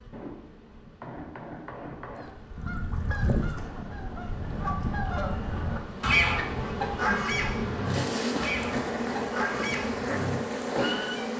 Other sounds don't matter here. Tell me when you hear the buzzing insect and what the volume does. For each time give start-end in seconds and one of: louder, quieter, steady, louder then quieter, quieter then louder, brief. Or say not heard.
0.0-11.3 louder.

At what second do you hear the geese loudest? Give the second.
6 s.